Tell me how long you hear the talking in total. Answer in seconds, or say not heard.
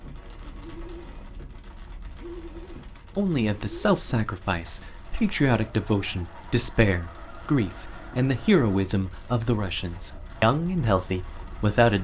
9 s.